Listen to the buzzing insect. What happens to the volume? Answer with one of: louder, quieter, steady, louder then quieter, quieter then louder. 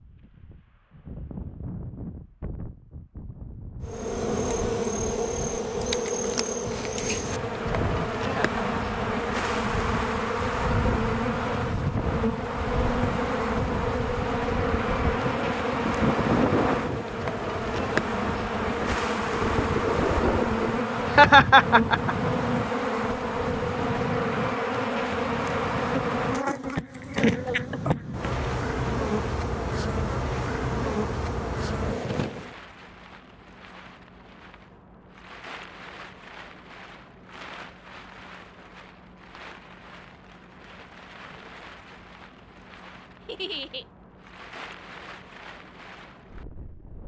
steady.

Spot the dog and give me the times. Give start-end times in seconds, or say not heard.
not heard.